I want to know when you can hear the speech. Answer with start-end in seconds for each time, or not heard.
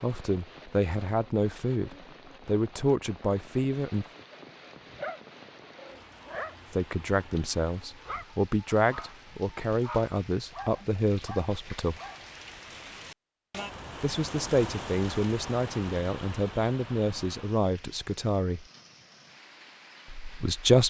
0.0-4.0, 6.7-12.0, 14.0-18.6, 20.1-20.8.